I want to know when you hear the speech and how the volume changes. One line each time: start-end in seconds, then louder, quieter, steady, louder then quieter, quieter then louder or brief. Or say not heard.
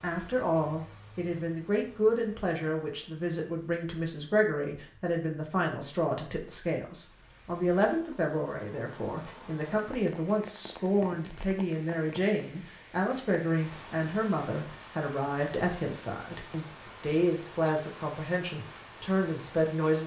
0.0-20.0 steady.